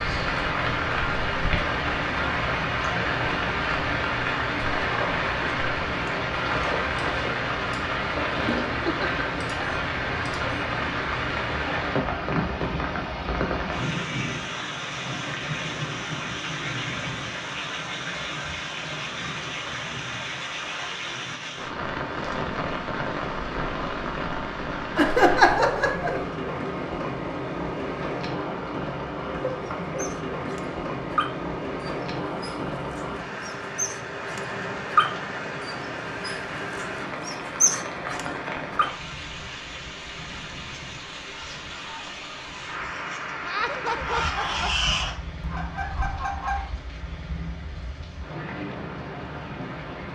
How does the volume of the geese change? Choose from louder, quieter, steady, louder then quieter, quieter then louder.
louder.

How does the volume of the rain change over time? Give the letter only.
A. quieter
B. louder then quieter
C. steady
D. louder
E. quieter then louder
A.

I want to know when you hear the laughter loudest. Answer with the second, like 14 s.
25 s.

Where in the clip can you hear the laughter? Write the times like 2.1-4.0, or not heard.
8.3-9.2, 24.9-26.2, 43.4-44.7.